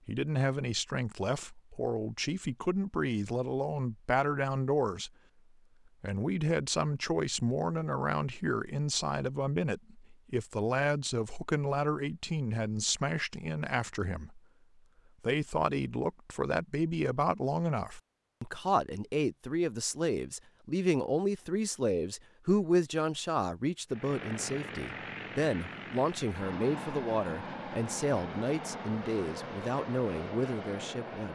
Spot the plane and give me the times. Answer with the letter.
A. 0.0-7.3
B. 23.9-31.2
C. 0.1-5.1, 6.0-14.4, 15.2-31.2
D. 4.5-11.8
B.